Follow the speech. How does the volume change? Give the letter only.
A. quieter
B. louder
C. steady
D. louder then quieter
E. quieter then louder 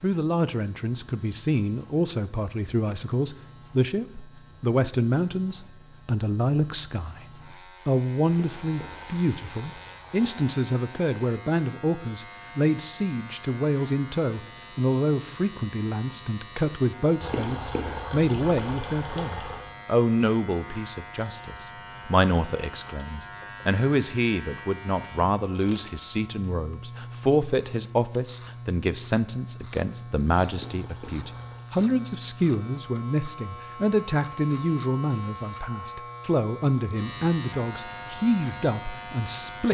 C.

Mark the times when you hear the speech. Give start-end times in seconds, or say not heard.
0.0-39.7.